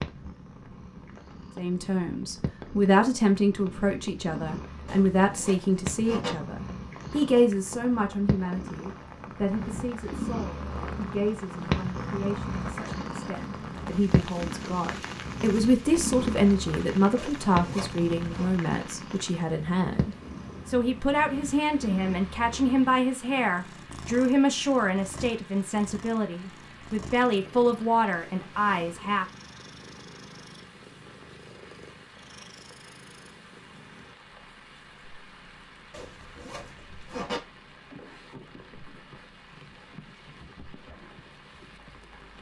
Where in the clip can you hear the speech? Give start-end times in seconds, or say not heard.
1.6-29.2.